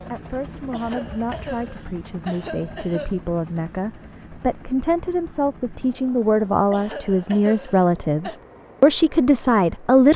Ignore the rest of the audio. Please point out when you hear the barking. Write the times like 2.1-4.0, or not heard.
not heard.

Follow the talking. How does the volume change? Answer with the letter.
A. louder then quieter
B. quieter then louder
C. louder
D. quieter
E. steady
C.